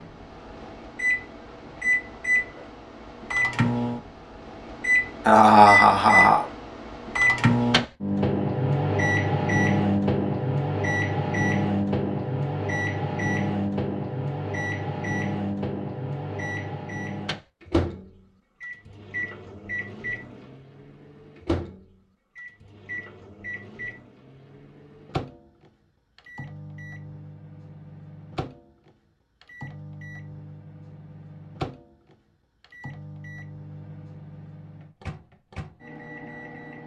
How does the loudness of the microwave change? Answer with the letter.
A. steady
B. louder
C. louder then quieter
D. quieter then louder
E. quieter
E.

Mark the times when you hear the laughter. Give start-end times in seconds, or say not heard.
5.2-6.5.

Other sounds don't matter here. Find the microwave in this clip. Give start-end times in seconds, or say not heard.
0.0-36.8.